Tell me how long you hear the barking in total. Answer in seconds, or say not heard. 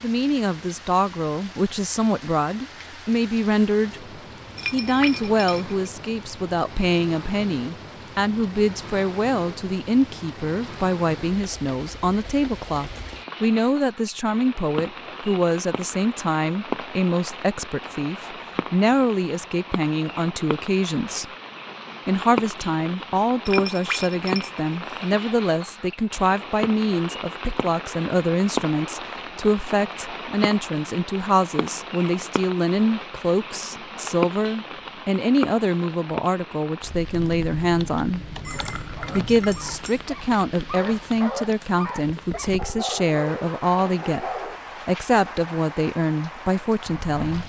6 s.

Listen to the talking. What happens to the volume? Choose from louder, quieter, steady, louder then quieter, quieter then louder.
steady.